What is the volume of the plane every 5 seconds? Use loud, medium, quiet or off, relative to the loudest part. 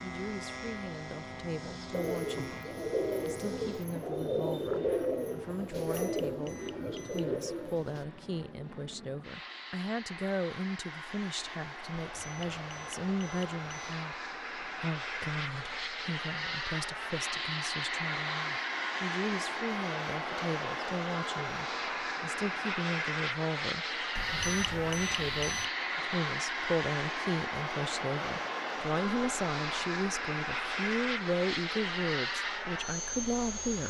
medium, quiet, medium, loud, loud, loud, loud.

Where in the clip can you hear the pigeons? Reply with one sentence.
The pigeons can be heard from 1.9 to 8.1 s.